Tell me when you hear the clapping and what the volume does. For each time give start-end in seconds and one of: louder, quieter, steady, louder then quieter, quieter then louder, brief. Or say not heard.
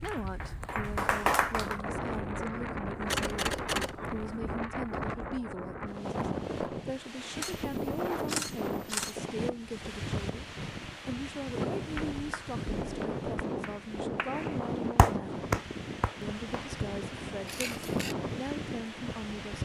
0.0-1.8 brief
11.9-16.6 louder.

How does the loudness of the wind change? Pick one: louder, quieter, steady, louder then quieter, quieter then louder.
steady.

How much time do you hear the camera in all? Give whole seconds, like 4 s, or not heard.
4 s.